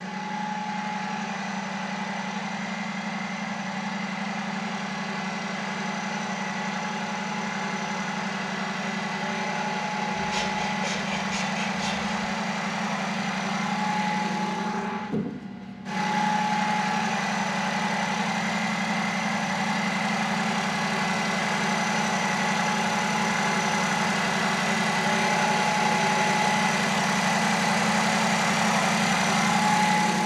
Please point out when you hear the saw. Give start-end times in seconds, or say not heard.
10.2-12.1.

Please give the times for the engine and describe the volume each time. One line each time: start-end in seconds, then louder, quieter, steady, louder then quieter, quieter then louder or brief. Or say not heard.
0.0-30.2 louder.